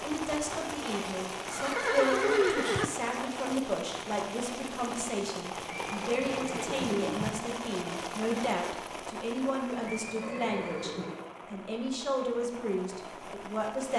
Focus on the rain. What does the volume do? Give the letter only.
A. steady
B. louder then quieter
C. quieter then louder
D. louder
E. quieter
E.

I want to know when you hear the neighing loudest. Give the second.
2 s.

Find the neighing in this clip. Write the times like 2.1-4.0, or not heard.
1.4-2.9, 5.7-7.5, 9.8-11.2.